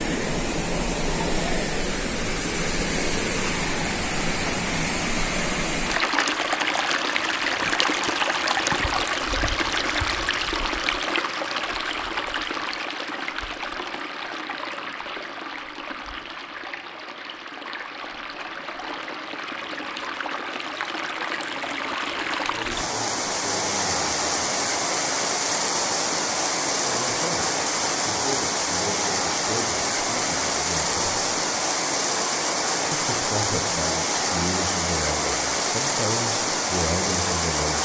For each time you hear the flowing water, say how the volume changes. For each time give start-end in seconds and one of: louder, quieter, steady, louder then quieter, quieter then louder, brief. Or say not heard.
0.0-37.7 quieter then louder.